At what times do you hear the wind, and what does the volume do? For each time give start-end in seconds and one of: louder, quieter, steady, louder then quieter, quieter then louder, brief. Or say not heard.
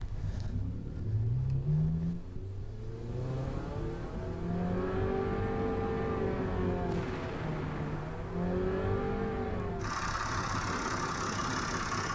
0.0-12.1 louder.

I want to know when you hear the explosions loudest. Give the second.
7 s.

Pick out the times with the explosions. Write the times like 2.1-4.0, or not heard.
6.8-8.6.